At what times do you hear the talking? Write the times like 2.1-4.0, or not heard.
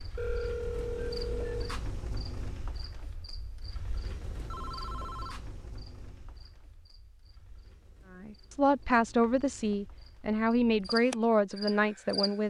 8.2-12.4.